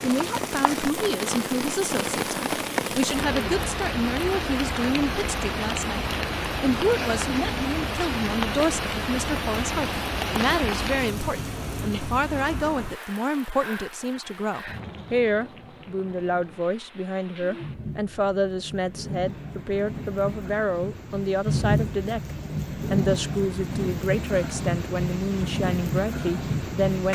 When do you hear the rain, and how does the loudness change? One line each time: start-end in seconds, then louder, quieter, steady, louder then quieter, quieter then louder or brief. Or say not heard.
0.0-27.1 quieter then louder.